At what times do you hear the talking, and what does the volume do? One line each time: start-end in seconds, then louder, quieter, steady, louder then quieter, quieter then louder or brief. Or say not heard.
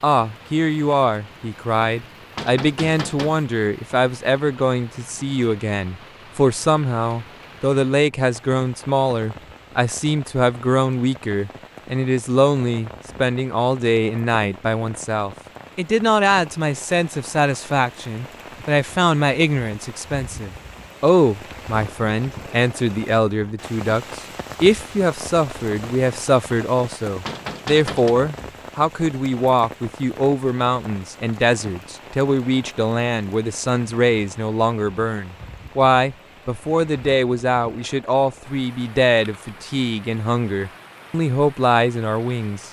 0.0-42.6 steady.